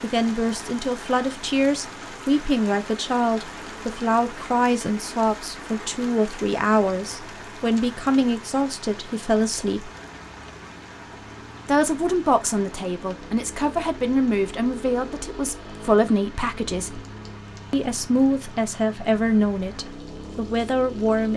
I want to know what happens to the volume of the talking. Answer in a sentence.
The volume of the talking stays about the same.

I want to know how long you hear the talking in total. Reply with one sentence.
You can hear the talking for 19 seconds altogether.